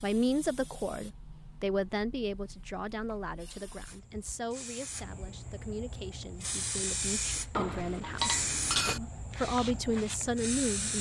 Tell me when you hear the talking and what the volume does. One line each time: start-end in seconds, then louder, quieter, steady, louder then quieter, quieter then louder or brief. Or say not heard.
0.0-10.9 quieter then louder.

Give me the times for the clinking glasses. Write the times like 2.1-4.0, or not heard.
7.5-9.0.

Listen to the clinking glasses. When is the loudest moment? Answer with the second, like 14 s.
9 s.